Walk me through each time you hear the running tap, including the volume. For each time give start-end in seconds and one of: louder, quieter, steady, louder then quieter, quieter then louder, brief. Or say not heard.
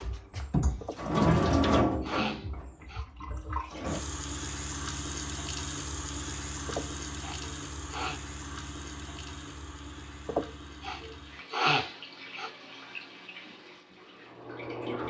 0.0-15.0 quieter.